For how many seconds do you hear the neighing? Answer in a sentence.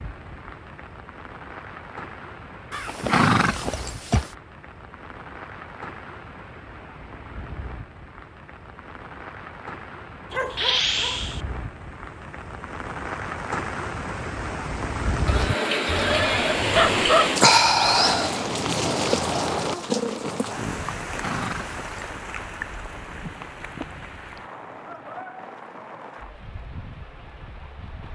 You can hear the neighing for 4 seconds altogether.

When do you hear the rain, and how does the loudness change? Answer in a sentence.
The rain can be heard from 0.0 to 28.1 s, getting louder then quieter.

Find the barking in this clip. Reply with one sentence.
You can hear the barking from 10.3 to 11.4 s and from 15.8 to 18.1 s.